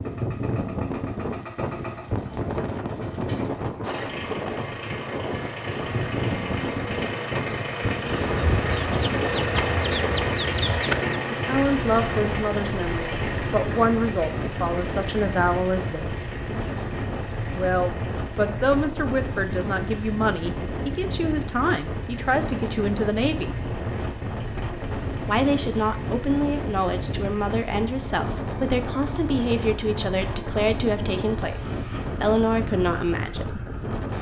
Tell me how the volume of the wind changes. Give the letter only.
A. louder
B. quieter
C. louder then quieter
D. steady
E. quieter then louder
D.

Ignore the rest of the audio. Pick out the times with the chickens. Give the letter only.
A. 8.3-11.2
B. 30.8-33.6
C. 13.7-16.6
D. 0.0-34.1
A.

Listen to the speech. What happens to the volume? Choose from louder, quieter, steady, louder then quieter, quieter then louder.
steady.